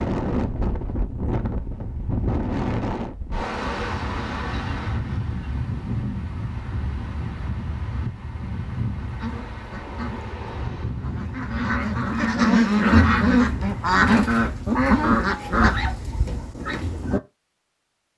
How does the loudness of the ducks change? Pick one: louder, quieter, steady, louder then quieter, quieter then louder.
louder then quieter.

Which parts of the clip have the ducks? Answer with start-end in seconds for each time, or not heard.
9.0-17.2.